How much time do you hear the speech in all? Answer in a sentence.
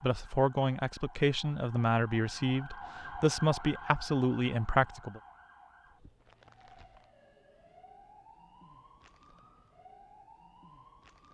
The speech can be heard for 5 seconds in total.